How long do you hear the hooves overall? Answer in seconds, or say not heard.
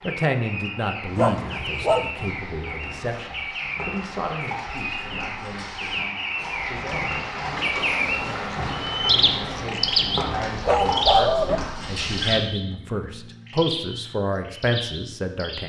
11 s.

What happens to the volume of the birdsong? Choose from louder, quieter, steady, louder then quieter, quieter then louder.
louder then quieter.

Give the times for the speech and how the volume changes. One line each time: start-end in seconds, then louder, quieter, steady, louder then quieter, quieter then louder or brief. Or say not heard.
0.0-15.6 quieter then louder.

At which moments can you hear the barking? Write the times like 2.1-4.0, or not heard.
1.1-2.1, 10.2-11.6.